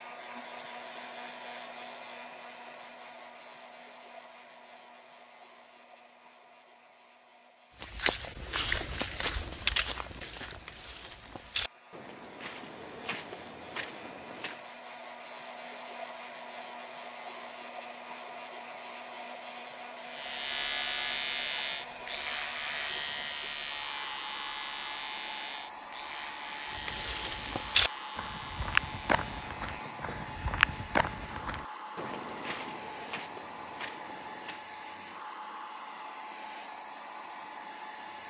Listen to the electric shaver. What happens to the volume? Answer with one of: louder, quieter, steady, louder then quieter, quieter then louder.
quieter.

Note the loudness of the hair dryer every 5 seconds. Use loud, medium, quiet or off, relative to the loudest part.
loud, quiet, medium, loud, loud, loud, loud, loud.